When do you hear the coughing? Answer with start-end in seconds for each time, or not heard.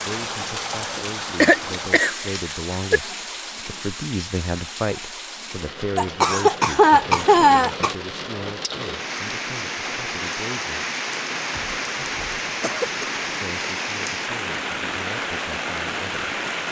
0.9-3.0, 6.0-8.0, 11.8-13.2.